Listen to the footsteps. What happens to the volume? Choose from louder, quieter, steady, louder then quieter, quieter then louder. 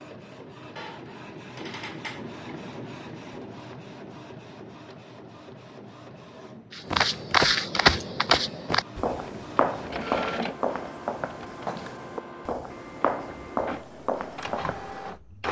quieter.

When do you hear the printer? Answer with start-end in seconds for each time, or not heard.
0.0-15.4.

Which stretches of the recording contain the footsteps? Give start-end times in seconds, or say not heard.
6.8-15.2.